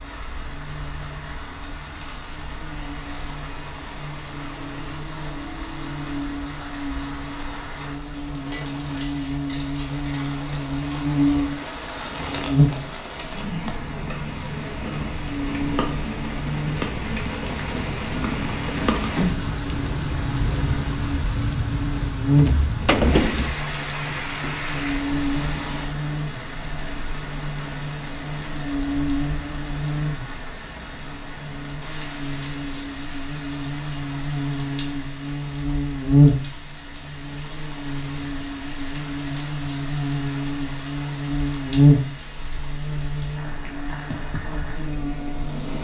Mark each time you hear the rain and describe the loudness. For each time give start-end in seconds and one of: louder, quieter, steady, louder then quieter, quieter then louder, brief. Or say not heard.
0.0-45.7 louder then quieter.